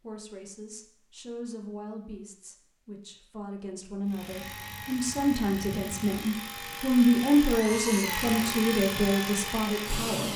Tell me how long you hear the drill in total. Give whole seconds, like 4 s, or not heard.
6 s.